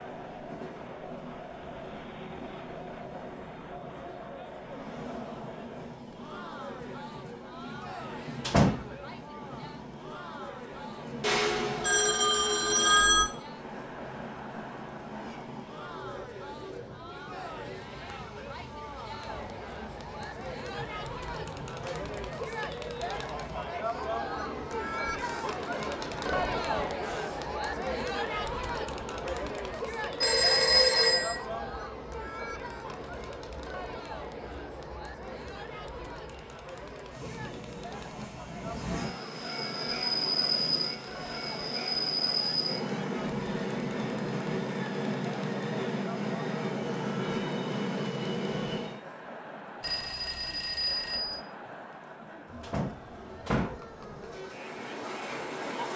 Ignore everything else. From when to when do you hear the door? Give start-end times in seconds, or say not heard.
8.0-8.9, 52.6-53.8.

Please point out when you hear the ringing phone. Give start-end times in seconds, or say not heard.
11.2-13.2, 30.2-31.4, 49.8-51.4.